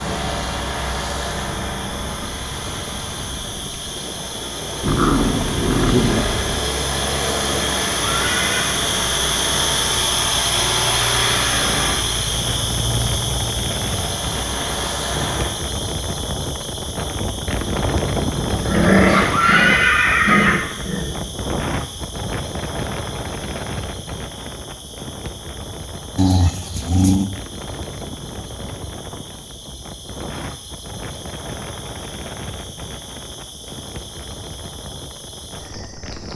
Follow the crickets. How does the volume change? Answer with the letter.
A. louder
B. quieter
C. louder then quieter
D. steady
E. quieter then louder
C.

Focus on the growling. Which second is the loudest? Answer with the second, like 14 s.
19 s.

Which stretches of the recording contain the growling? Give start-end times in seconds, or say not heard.
4.8-6.4, 18.6-21.3, 26.1-27.3.